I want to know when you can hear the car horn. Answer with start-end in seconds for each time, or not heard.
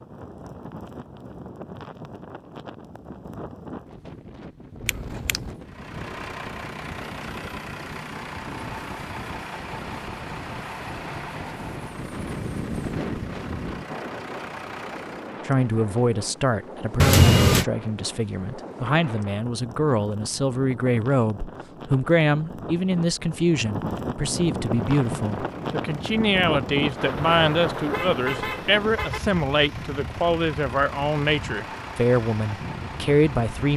4.8-5.5, 16.9-17.6, 27.3-29.2.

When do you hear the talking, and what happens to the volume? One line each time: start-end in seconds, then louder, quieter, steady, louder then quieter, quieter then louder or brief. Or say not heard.
15.4-33.7 steady.